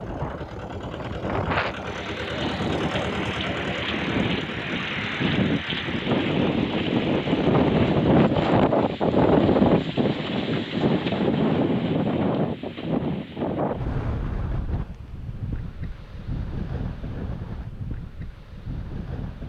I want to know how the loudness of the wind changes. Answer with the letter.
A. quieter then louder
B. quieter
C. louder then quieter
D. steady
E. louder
C.